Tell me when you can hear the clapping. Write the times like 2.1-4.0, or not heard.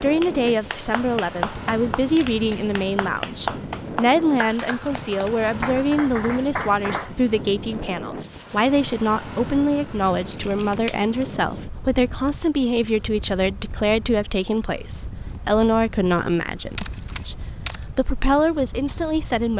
0.0-7.1.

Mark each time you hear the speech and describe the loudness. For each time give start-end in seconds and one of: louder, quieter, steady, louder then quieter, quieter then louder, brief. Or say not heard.
0.0-19.5 steady.